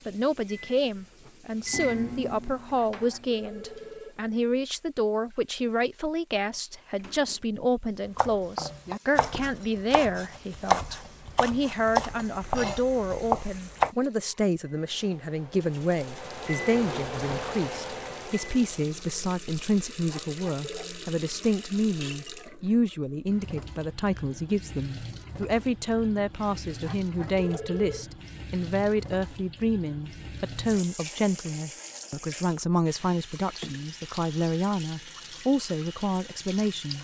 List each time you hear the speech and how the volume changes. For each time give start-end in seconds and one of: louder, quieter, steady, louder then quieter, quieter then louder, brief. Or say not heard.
0.1-36.9 steady.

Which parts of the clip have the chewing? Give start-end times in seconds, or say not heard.
not heard.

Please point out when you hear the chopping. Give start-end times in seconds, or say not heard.
8.2-13.9.